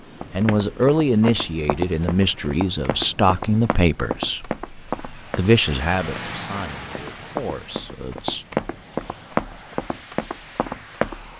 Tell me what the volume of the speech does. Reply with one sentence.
The volume of the speech goes down.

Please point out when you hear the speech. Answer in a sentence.
The speech can be heard from 0.3 to 8.4 s.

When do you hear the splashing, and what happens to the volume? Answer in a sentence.
You can't hear the splashing here.